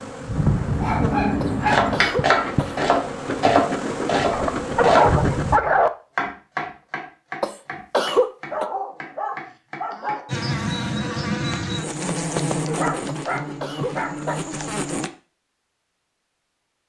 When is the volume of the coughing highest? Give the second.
8 s.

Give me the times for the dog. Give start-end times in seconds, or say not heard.
0.3-2.1, 4.3-5.9, 8.5-10.3, 12.7-14.3.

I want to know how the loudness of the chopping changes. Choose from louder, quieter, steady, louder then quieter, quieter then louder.
quieter.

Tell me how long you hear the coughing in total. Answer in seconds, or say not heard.
4 s.